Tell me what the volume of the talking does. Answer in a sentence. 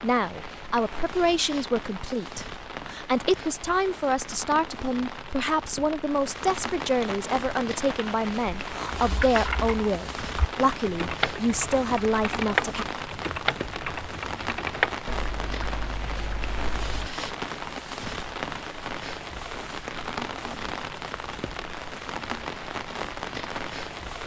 The volume of the talking stays about the same.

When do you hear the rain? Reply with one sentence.
The rain can be heard from 0.0 to 24.2 s.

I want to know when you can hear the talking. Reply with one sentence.
You can hear the talking from 0.0 to 12.8 s.